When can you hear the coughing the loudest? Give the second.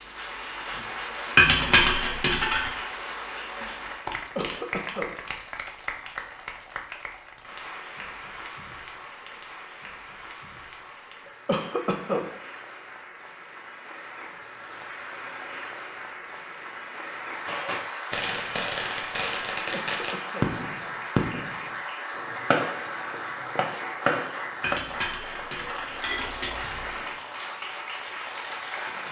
12 s.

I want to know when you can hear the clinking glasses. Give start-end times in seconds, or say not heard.
1.4-2.7, 24.6-27.0.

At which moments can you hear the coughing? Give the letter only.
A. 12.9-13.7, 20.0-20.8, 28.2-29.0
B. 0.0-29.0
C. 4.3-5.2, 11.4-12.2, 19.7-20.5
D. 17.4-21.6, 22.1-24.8
C.